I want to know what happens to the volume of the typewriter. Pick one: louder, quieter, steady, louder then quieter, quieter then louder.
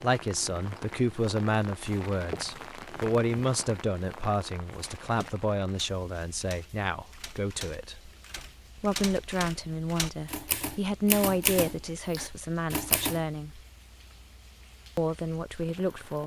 louder.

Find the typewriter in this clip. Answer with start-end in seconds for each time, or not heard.
4.8-13.2.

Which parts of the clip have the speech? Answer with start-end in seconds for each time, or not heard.
0.0-8.1, 8.8-13.6, 14.9-16.2.